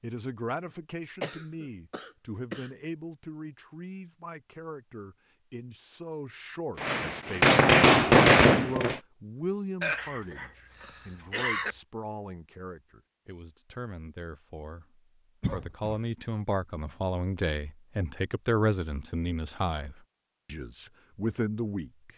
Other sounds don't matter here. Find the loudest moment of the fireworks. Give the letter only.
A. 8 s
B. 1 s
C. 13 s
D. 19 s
A.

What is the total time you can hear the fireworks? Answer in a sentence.
The fireworks can be heard for 2 seconds in total.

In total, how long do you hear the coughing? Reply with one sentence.
The coughing can be heard for 4 seconds in total.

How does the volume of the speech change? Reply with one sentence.
The loudness of the speech goes up.